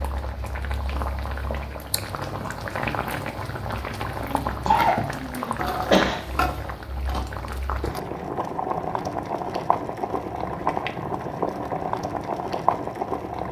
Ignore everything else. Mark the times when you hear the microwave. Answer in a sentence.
The microwave can't be heard in this clip.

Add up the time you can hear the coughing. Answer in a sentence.
You can hear the coughing for 2 seconds altogether.